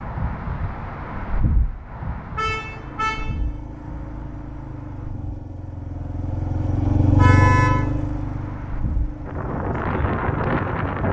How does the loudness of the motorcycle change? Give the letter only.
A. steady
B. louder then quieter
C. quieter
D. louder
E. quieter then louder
B.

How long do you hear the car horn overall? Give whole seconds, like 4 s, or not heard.
2 s.